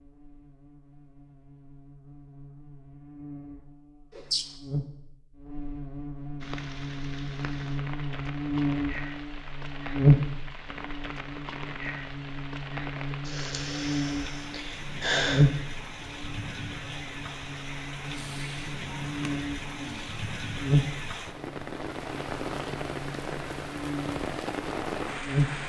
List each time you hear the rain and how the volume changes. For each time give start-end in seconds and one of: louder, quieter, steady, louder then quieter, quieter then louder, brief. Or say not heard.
6.4-25.6 louder.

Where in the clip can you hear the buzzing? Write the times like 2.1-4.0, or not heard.
0.0-25.6.